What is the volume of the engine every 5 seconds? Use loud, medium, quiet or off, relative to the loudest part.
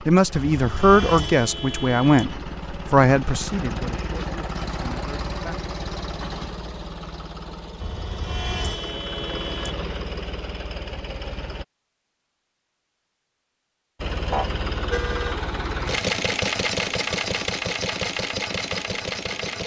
medium, medium, medium, loud.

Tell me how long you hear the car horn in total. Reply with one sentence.
The car horn can be heard for 5 seconds in total.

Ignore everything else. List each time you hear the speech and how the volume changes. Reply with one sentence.
You can hear the speech from 0.1 to 5.5 s, getting quieter.